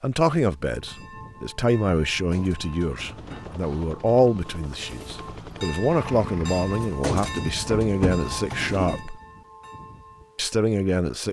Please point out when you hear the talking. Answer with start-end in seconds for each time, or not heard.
0.0-9.2, 10.3-11.2.